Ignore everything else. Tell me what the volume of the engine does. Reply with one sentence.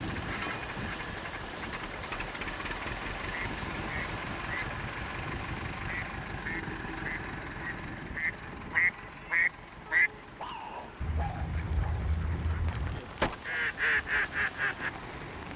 The loudness of the engine goes down.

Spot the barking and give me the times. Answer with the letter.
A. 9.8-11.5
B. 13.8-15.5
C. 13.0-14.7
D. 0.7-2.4
A.